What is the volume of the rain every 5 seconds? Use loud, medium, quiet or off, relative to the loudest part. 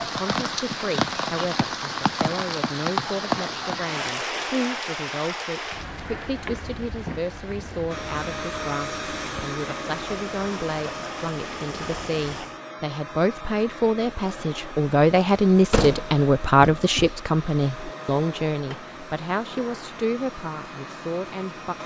loud, medium, medium, off, off.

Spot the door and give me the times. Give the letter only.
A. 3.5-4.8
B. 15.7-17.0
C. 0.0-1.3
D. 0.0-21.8
B.